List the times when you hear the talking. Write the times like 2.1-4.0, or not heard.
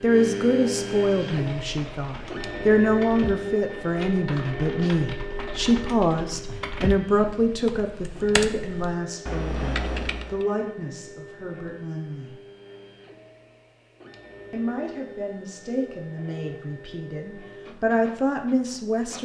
0.0-12.3, 14.5-19.1.